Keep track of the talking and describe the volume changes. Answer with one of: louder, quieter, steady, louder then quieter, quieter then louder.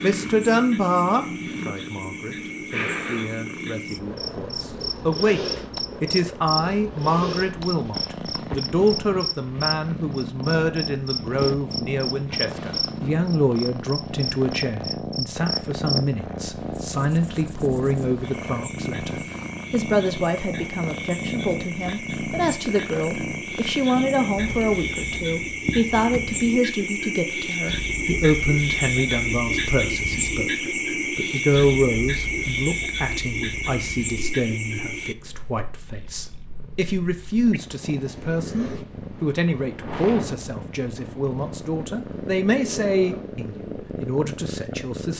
steady.